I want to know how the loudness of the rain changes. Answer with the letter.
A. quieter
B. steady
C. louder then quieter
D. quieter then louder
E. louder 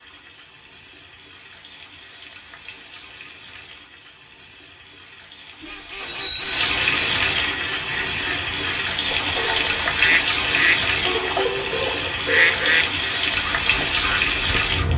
E.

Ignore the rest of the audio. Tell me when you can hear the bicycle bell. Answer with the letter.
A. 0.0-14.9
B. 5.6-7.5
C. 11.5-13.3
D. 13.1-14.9
B.